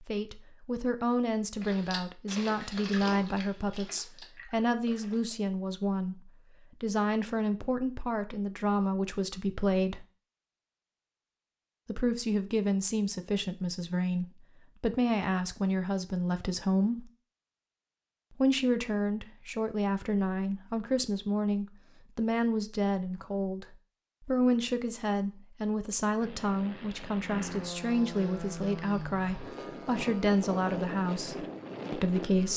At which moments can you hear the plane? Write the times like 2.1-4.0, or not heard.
26.2-32.5.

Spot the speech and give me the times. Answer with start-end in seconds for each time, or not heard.
0.0-10.1, 11.8-17.1, 18.4-32.5.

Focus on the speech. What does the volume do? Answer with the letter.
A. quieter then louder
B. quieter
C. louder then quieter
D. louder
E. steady
E.